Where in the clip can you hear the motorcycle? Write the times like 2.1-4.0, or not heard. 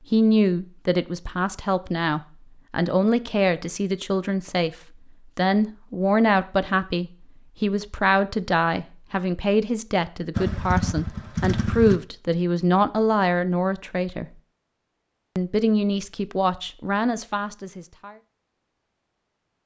10.3-12.0.